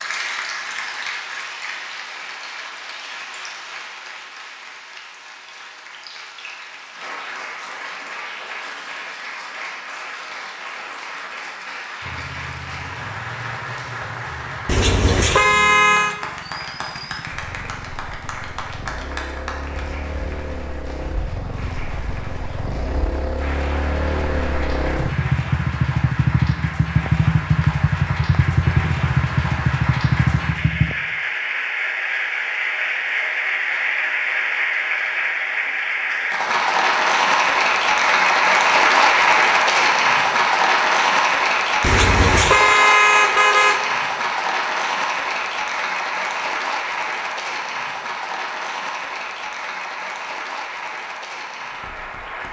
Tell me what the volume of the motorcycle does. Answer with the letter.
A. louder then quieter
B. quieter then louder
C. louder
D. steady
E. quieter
C.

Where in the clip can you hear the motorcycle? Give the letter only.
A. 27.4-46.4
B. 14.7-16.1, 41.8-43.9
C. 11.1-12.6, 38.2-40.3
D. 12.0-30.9
D.